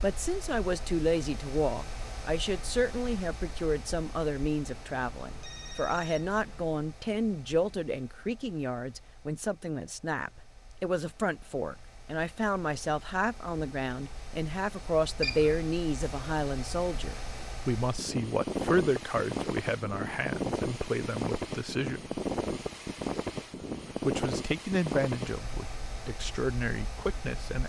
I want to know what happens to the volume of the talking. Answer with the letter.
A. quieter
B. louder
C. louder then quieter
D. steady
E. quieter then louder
D.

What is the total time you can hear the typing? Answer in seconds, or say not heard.
not heard.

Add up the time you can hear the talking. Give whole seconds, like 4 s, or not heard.
26 s.